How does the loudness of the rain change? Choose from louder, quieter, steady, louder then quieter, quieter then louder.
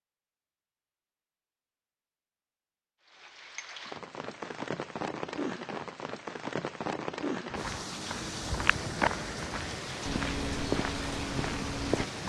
steady.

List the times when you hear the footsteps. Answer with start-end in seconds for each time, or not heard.
7.5-12.2.